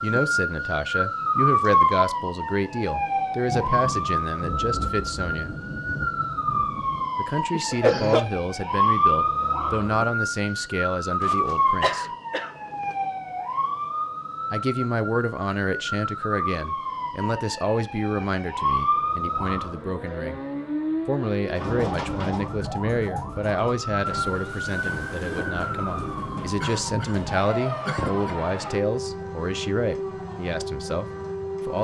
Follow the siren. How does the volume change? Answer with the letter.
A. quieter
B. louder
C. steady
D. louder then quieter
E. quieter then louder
A.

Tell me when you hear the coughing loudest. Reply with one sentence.
The volume of the coughing peaks at 8 seconds.